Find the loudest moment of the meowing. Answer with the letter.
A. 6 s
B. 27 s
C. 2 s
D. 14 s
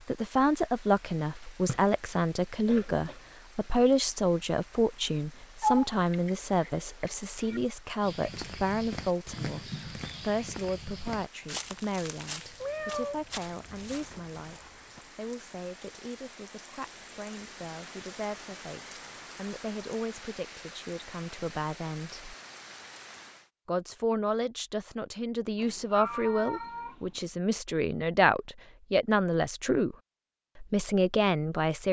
A.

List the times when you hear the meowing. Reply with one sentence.
You can hear the meowing from 5.6 to 7.6 s, from 12.6 to 14.4 s and from 25.6 to 27.2 s.